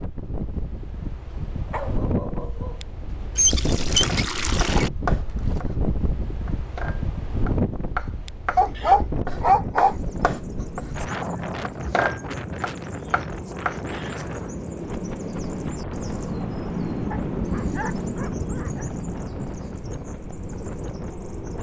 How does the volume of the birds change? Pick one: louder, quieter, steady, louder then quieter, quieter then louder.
louder then quieter.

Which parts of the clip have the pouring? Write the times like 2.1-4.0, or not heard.
3.4-4.9.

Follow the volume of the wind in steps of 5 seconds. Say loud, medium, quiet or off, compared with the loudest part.
loud, loud, loud, medium, medium.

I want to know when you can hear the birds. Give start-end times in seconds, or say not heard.
9.8-21.5.